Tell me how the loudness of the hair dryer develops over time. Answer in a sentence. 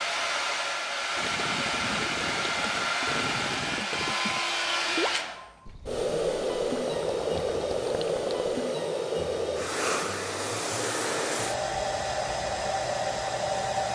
The loudness of the hair dryer stays about the same.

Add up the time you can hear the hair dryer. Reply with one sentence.
You can hear the hair dryer for 14 seconds altogether.